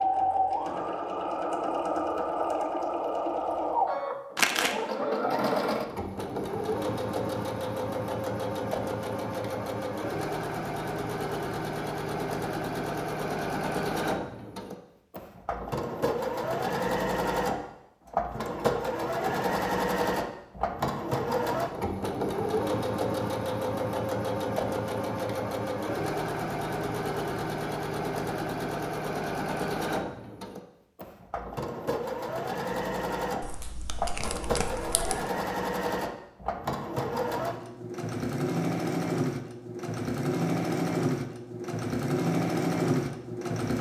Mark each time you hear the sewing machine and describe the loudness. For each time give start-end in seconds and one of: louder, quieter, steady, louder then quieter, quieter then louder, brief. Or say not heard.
0.0-43.7 steady.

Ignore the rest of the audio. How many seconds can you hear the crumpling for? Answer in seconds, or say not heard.
2 s.